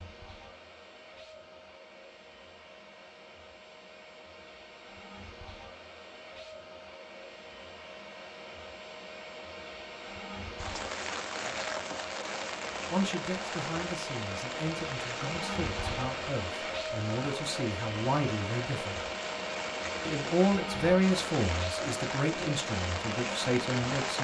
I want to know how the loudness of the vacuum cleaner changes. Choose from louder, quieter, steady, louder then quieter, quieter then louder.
louder.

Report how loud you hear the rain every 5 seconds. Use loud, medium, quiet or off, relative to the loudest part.
off, off, loud, medium, loud.